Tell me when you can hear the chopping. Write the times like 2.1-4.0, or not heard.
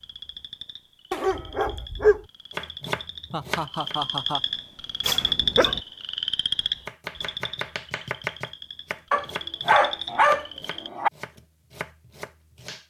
2.5-4.0, 6.8-12.8.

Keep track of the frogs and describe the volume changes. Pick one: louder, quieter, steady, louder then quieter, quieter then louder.
louder then quieter.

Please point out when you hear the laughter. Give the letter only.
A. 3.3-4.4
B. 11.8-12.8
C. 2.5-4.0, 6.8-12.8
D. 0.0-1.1
A.